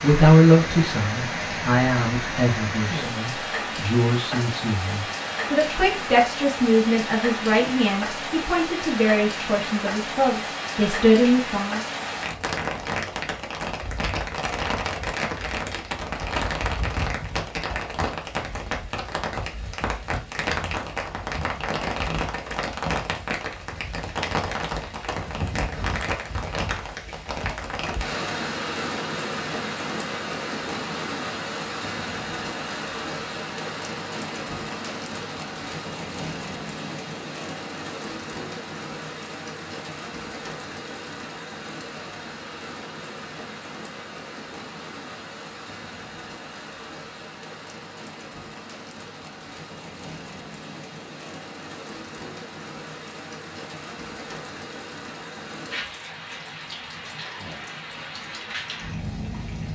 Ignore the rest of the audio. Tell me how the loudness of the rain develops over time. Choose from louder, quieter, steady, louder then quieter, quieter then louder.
quieter.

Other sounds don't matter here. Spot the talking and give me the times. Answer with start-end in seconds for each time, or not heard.
0.0-11.8.